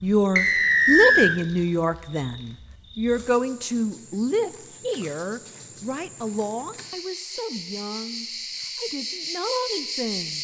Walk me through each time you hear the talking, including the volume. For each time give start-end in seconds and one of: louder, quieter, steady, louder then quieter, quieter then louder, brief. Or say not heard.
0.0-10.3 quieter.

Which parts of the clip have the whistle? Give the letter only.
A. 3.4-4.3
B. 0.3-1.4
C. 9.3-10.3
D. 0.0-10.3
B.